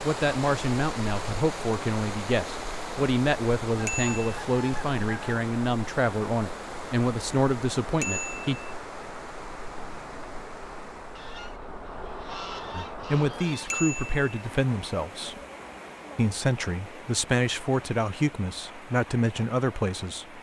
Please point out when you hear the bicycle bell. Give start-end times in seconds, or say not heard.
3.9-4.3, 8.0-8.6, 13.7-14.4.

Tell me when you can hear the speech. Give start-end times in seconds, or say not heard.
0.0-8.6, 12.8-15.4, 16.1-20.3.